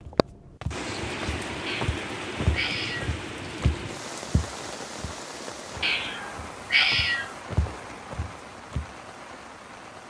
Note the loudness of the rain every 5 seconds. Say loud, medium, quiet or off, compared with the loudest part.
loud, medium.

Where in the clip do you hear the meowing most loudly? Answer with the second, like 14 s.
7 s.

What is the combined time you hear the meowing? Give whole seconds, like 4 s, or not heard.
3 s.